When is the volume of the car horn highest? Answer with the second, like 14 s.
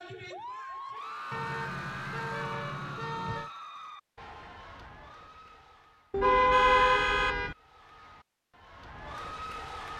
7 s.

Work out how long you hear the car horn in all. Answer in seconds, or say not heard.
4 s.